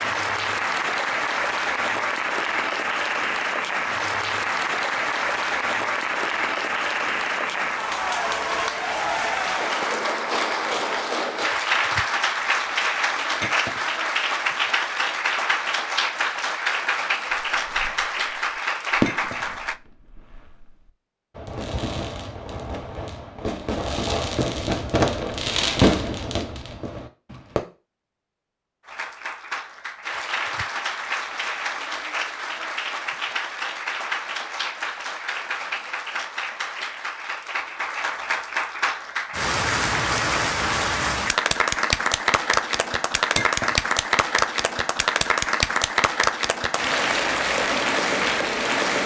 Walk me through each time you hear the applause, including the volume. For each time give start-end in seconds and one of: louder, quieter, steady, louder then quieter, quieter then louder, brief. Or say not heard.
0.0-19.8 steady
28.9-49.0 louder.